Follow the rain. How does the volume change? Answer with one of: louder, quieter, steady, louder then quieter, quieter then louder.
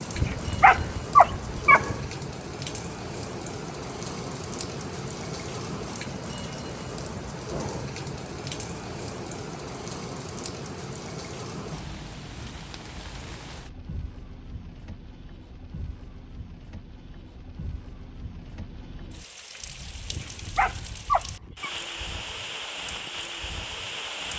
quieter then louder.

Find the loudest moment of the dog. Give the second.
1 s.